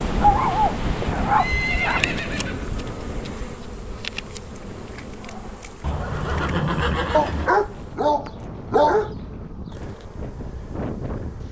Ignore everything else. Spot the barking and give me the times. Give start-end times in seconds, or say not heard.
0.2-2.1, 7.1-9.2.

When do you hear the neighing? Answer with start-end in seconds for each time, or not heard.
1.3-2.8, 5.8-7.5.